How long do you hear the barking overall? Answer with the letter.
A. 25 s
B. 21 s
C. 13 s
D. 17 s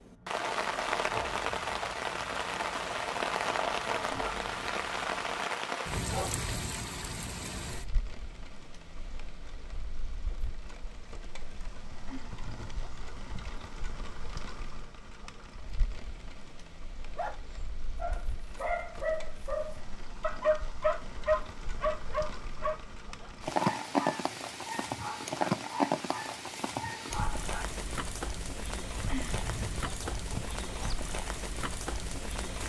D.